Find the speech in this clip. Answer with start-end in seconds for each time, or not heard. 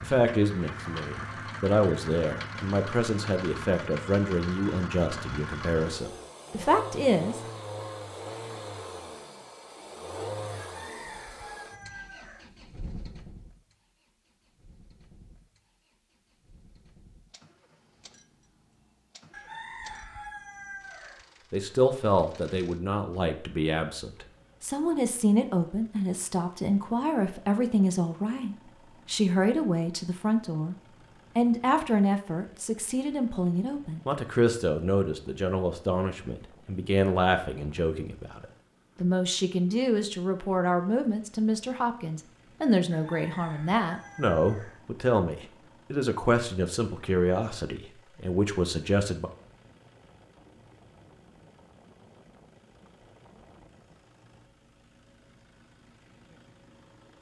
0.0-7.4, 21.5-30.8, 31.4-49.3.